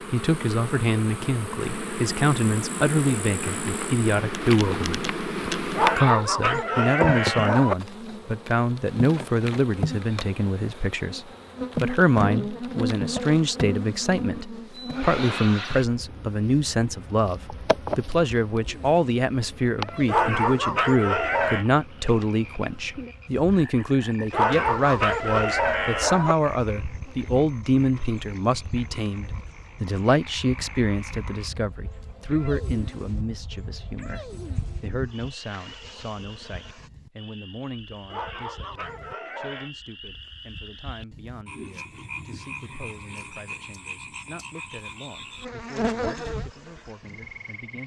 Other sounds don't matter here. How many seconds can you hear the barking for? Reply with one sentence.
The barking can be heard for 7 seconds in total.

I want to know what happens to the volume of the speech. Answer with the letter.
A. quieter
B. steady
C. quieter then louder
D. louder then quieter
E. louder
A.